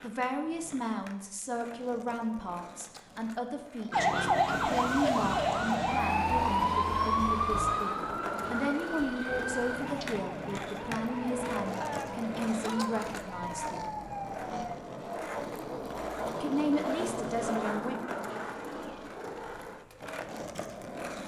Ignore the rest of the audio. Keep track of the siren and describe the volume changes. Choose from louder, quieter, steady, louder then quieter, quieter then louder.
quieter.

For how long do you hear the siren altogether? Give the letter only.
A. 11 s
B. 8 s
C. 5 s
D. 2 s
A.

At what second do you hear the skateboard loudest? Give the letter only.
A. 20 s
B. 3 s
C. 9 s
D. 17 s
D.